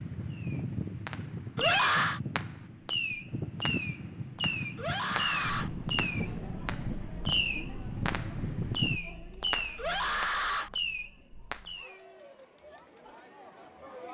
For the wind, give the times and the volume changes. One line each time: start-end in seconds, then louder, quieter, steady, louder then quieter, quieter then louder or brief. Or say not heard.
0.0-9.0 steady.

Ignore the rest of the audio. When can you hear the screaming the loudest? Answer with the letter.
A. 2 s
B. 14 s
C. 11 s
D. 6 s
A.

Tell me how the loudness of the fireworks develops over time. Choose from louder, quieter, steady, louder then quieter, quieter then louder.
steady.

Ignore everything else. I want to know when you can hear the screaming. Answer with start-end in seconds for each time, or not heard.
1.6-2.2, 4.8-5.7, 9.8-10.7.